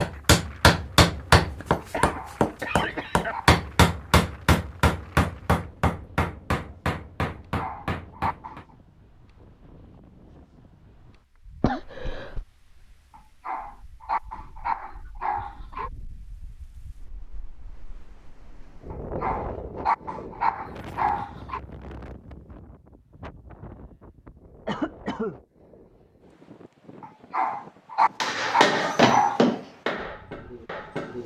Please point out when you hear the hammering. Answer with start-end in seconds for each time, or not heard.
0.0-8.7, 28.2-31.2.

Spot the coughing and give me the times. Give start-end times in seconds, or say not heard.
1.9-3.4, 11.6-12.4, 24.6-25.4.